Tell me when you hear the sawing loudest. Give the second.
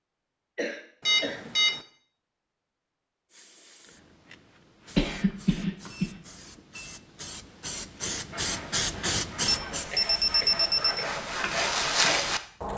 12 s.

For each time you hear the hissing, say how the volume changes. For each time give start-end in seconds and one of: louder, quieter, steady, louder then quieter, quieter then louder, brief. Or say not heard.
3.3-12.7 louder then quieter.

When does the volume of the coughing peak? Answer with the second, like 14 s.
5 s.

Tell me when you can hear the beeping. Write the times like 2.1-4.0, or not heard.
1.1-1.8, 5.9-6.9, 9.5-11.1.